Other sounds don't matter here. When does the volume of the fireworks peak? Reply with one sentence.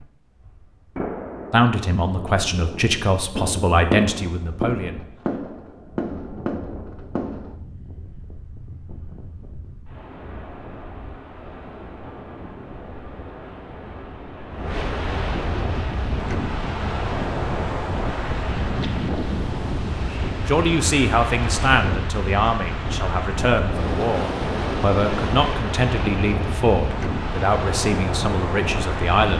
The loudest moment of the fireworks is at 4 seconds.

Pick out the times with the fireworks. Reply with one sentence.
You can hear the fireworks from 0.9 to 7.5 s.